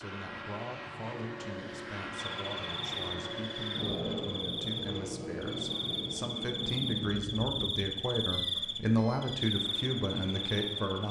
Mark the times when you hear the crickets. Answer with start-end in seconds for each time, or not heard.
2.4-11.0.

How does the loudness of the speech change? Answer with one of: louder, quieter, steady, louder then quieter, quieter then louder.
louder.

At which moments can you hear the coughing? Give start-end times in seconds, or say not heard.
not heard.